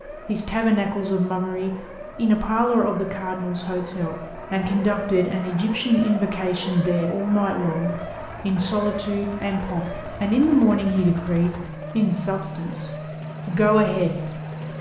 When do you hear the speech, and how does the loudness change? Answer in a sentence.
The speech can be heard from 0.1 to 14.7 s, at a steady volume.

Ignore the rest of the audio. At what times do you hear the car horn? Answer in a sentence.
You can't hear the car horn here.